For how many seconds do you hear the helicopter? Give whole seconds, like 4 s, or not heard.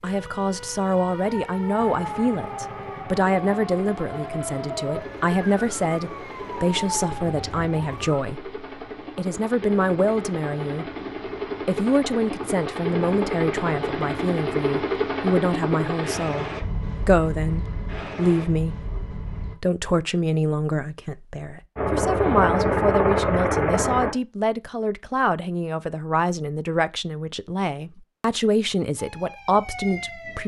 20 s.